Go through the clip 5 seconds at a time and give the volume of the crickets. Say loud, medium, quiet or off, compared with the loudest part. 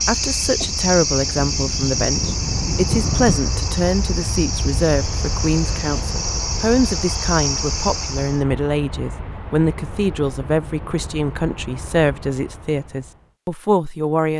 loud, loud, off.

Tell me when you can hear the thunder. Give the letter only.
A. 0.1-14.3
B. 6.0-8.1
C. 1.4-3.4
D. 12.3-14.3
C.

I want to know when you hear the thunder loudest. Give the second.
3 s.